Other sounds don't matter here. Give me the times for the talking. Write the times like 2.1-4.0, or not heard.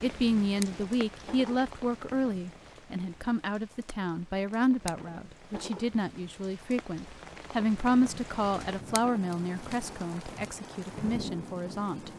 0.0-12.1.